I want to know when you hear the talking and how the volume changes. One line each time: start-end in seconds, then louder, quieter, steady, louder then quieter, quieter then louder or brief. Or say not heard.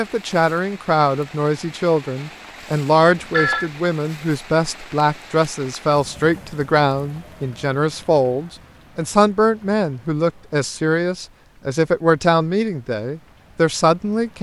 0.0-14.3 steady.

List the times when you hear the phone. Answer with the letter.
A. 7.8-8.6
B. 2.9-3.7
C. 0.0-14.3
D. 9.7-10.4
B.